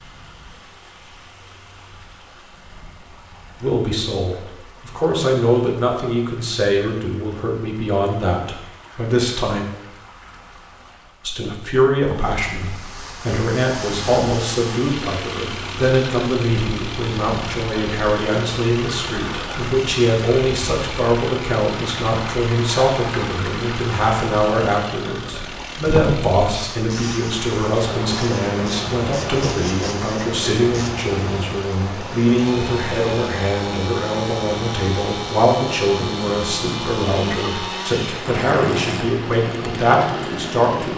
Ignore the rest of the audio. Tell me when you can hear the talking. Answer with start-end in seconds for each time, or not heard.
3.6-9.7, 11.2-40.9.